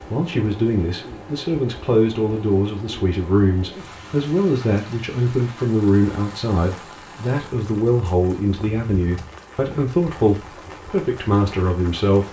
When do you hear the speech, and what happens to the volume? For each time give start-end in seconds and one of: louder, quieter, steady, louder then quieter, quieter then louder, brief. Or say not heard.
0.1-12.2 steady.